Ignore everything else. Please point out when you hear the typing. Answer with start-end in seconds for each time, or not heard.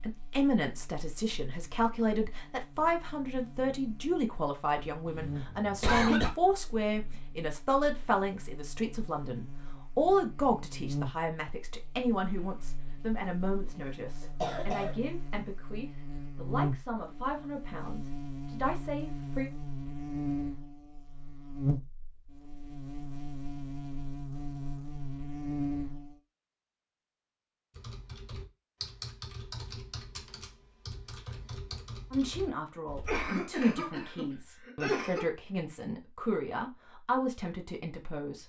27.7-33.3.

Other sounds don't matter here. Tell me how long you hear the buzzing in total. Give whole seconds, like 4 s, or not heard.
26 s.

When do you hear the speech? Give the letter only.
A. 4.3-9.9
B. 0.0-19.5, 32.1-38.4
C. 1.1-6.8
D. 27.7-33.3
B.